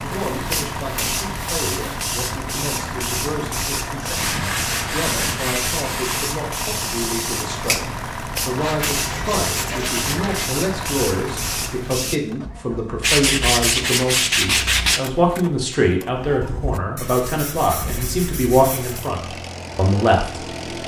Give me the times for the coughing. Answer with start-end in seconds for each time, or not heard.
not heard.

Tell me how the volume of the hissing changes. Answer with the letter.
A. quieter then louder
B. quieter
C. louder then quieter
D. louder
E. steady
E.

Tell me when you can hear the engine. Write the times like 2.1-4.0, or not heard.
0.0-20.8.